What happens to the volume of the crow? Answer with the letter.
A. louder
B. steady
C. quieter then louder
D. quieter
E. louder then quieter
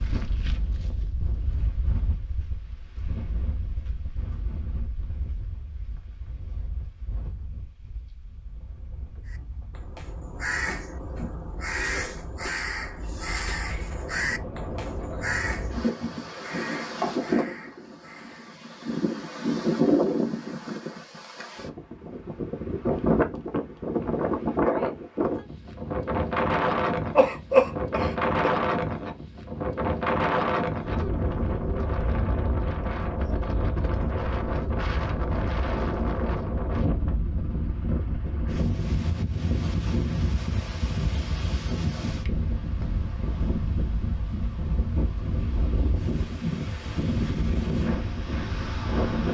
D.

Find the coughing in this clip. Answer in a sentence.
You can hear the coughing from 27.1 to 28.5 s.